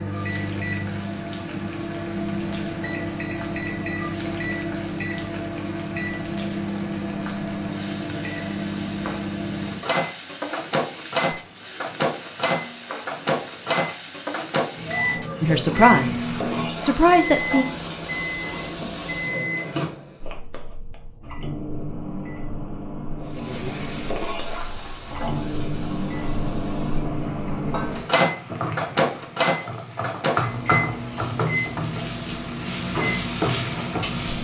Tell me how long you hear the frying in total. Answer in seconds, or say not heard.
31 s.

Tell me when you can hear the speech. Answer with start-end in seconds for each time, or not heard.
15.4-17.6.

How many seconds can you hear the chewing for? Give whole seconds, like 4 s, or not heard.
not heard.